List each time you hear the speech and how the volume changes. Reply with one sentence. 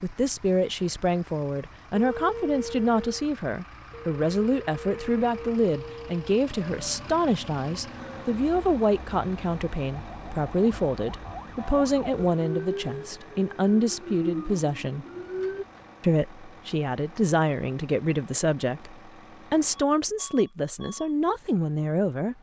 You can hear the speech from 0.0 to 15.1 s, at a steady volume; and from 16.0 to 22.3 s, at a steady volume.